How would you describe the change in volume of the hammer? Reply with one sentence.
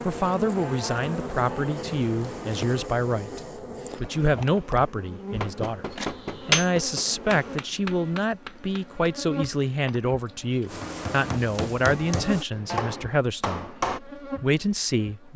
The loudness of the hammer goes down, then up.